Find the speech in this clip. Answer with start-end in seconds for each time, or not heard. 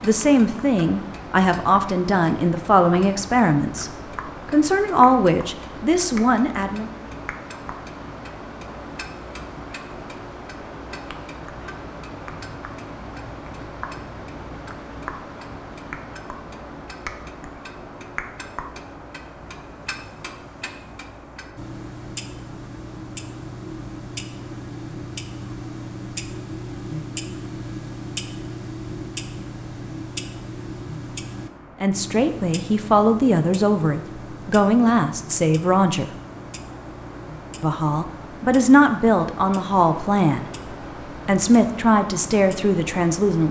0.0-6.9, 31.8-36.1, 37.6-43.4.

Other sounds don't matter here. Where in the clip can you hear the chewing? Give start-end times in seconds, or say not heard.
not heard.